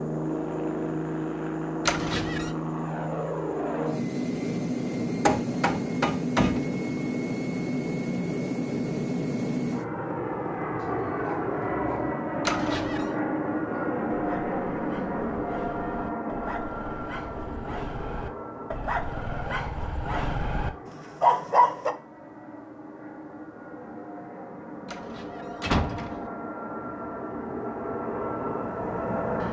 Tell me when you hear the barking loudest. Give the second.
21 s.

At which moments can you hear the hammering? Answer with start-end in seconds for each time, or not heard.
5.2-6.7.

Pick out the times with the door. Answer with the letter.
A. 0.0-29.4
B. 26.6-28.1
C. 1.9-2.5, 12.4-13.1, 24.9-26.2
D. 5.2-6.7
C.